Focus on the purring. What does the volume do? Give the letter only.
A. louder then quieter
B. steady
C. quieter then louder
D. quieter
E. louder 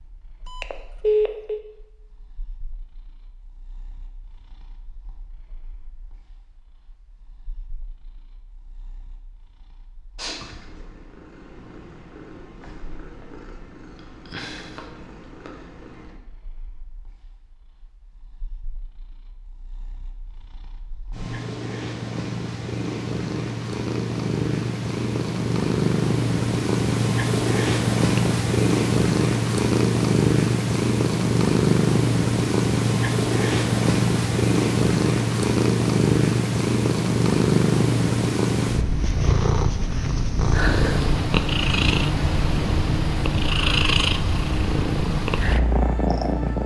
E.